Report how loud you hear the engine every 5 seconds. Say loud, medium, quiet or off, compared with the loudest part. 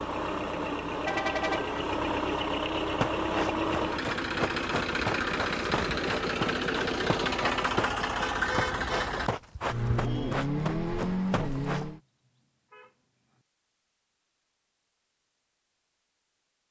loud, loud, loud, off.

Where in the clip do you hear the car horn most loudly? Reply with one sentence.
The loudest moment of the car horn is at 1 second.